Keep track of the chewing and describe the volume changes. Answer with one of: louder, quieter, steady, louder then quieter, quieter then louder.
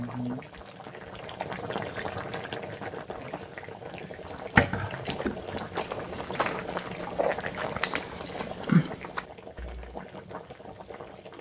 quieter then louder.